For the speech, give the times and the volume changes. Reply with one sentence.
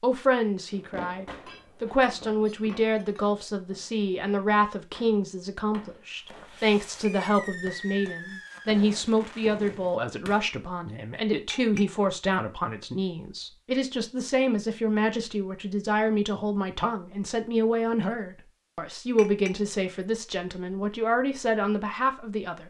You can hear the speech from 0.0 to 22.6 s, at a steady volume.